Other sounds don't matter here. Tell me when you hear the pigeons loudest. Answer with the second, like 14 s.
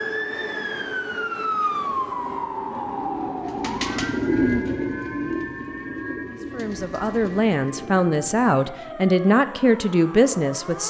4 s.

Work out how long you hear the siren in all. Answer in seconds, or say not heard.
11 s.